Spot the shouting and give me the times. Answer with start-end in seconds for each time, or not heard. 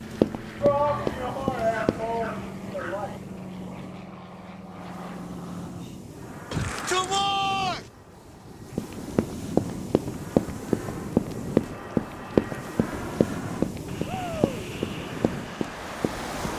0.6-3.2, 6.5-7.8, 14.1-14.6.